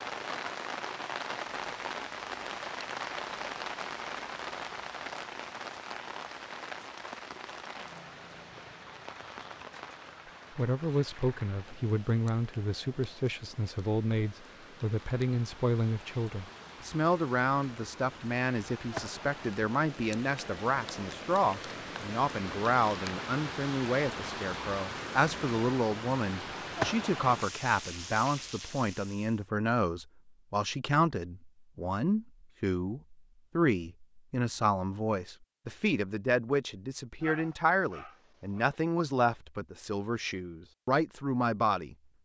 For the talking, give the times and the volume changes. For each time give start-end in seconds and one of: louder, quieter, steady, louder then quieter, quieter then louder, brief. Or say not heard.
10.6-42.0 steady.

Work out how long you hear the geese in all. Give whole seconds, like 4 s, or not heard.
not heard.